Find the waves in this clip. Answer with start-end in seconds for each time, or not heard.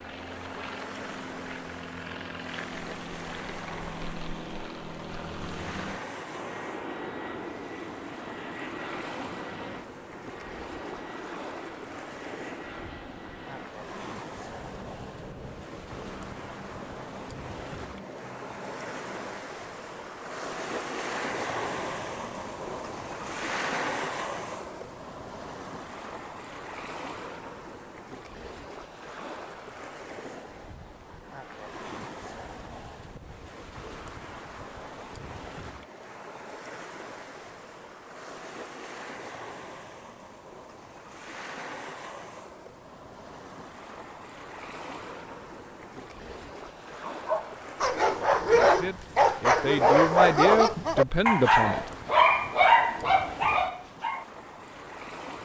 0.0-55.4.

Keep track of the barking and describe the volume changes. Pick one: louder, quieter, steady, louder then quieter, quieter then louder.
steady.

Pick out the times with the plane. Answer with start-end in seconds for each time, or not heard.
0.0-19.5.